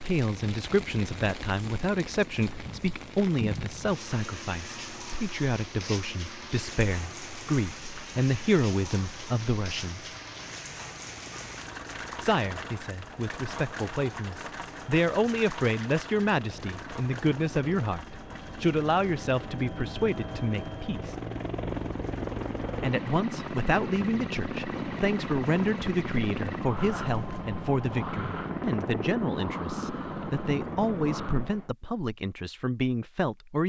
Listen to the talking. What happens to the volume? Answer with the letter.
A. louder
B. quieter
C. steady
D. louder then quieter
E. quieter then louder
C.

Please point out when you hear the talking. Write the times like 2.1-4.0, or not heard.
0.0-10.1, 12.2-21.1, 22.8-33.6.